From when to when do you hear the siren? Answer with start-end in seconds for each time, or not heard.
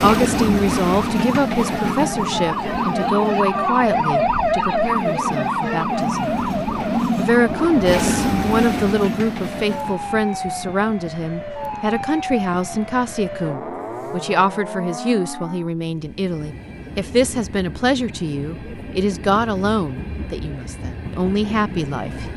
0.2-15.7.